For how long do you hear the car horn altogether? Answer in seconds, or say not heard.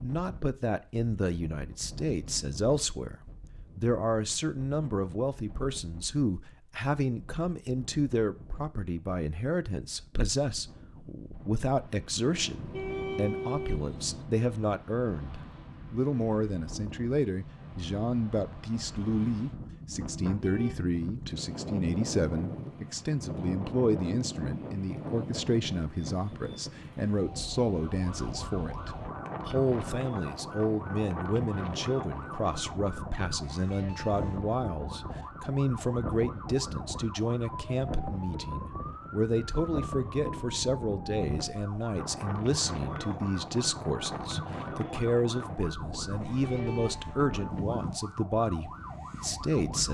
4 s.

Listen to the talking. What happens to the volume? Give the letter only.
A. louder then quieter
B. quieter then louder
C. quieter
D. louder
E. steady
E.